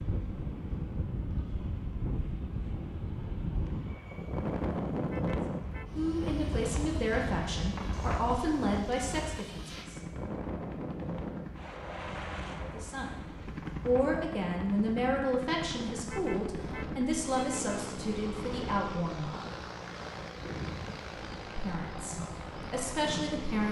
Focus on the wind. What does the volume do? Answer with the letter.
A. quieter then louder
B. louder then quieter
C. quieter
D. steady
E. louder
C.